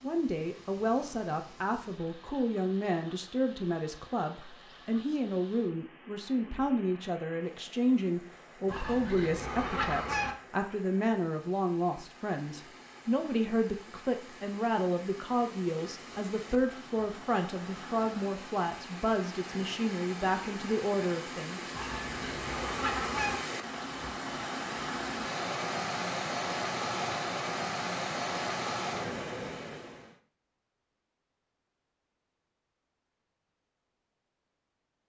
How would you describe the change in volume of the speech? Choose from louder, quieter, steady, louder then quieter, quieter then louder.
steady.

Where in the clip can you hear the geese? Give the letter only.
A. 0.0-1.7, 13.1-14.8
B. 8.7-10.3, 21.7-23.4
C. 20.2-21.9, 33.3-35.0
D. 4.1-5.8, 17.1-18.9
B.